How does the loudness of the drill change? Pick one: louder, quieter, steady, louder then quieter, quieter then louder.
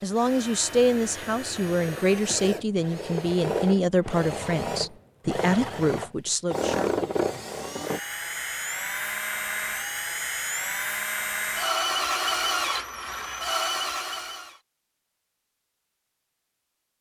louder.